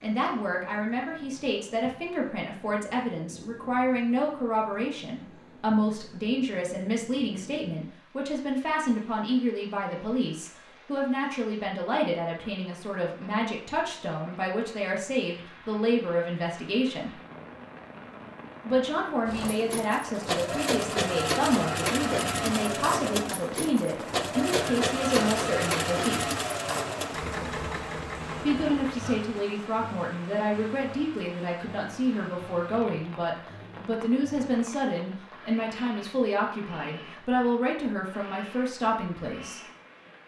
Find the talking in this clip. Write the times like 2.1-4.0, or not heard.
0.0-17.1, 18.6-26.3, 28.4-39.6.